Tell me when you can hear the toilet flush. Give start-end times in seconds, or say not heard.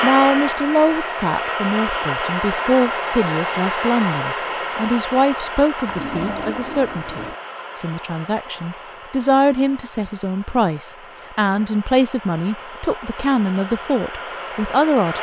5.8-7.4.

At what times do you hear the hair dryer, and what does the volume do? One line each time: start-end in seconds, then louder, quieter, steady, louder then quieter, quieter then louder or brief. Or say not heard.
0.0-15.1 quieter then louder.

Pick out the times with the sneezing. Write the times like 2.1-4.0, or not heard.
not heard.